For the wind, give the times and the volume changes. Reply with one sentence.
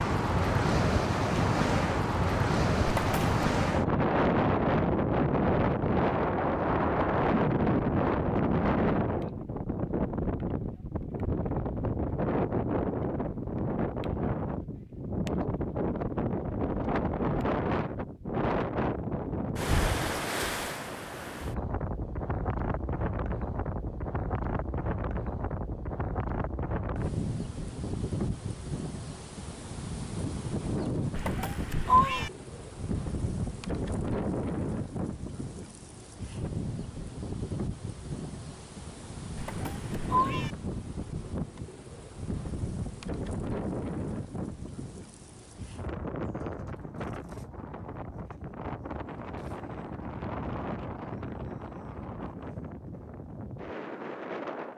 The wind can be heard from 0.0 to 54.7 s, getting quieter.